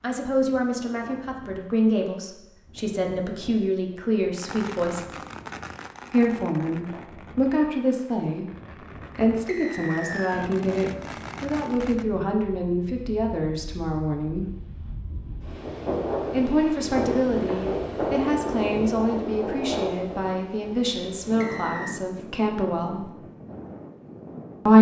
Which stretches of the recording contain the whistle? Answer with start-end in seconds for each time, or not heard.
9.4-10.5, 21.4-22.0.